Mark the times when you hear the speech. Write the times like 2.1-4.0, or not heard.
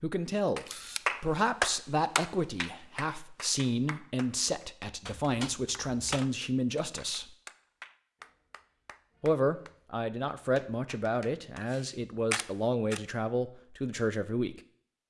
0.0-7.3, 9.2-14.6.